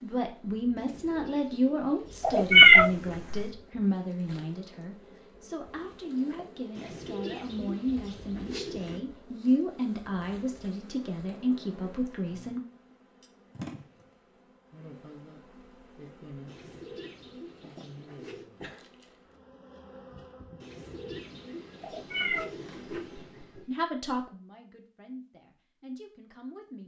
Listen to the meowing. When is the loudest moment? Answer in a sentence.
The volume of the meowing peaks at 3 seconds.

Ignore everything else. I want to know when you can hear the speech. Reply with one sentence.
You can hear the speech from 0.0 to 12.6 s and from 23.6 to 26.8 s.